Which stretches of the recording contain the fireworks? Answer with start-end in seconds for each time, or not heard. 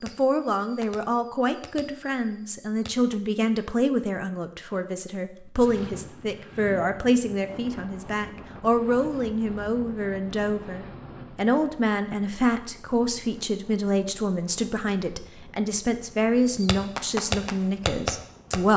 0.0-3.1, 16.4-18.6.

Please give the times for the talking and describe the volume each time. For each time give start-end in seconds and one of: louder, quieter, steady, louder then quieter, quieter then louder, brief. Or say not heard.
0.0-18.7 steady.